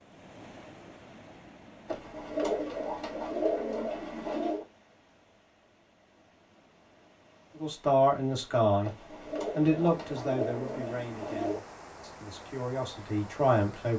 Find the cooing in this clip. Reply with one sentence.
The cooing can be heard from 1.9 to 4.7 s and from 8.8 to 11.6 s.